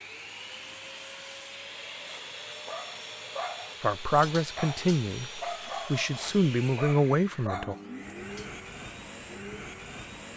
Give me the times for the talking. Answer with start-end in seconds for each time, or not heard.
3.8-7.8.